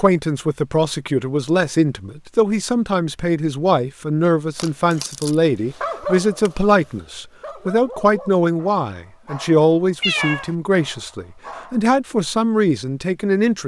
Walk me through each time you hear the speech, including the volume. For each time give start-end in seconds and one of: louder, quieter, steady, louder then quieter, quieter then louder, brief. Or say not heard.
0.0-13.6 steady.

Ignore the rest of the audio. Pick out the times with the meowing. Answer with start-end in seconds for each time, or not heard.
10.0-10.4.